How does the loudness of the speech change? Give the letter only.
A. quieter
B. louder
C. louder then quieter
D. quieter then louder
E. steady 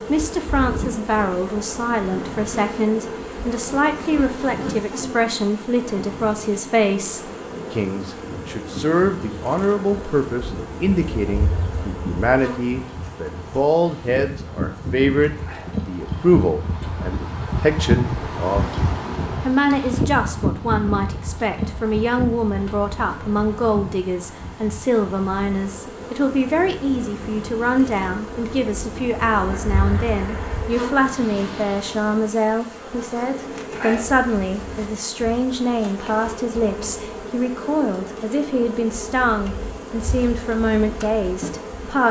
E.